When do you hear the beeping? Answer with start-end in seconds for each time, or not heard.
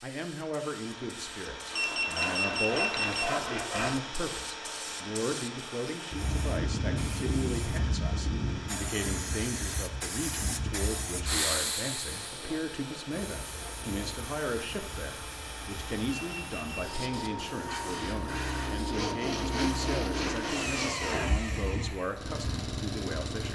1.7-3.2, 16.1-16.9.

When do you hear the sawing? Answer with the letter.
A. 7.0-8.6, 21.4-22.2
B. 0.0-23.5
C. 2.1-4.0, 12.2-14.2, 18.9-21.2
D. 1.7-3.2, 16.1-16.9
C.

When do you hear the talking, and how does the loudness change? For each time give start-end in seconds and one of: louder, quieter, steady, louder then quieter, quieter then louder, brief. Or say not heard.
0.0-23.5 steady.